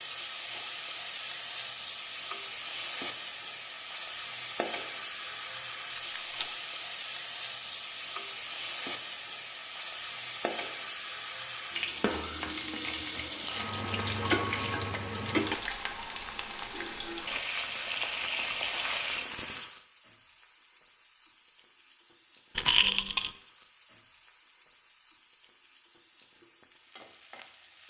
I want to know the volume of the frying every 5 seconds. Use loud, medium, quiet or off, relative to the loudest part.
medium, medium, loud, loud, quiet, quiet.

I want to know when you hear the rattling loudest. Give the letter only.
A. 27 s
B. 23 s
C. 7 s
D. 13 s
B.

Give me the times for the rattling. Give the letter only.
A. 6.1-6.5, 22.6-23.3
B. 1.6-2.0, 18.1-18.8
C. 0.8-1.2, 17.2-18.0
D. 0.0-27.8
A.